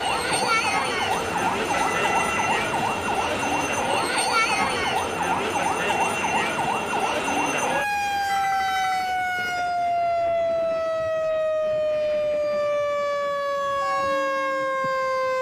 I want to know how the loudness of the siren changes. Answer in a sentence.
The volume of the siren stays about the same.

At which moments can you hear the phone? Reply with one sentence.
You can hear the phone from 1.7 to 2.5 s and from 8.2 to 9.1 s.